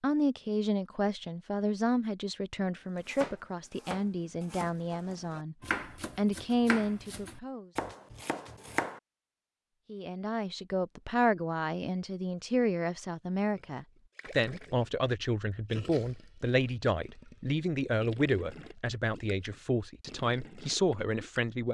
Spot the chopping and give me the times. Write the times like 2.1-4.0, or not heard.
3.0-9.0.